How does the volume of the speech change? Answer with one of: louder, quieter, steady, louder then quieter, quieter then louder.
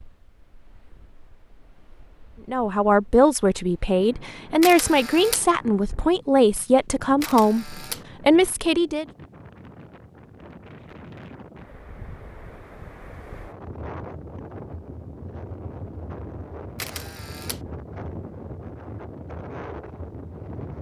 steady.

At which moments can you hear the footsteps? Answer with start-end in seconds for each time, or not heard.
not heard.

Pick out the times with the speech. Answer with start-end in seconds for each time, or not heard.
2.5-9.1.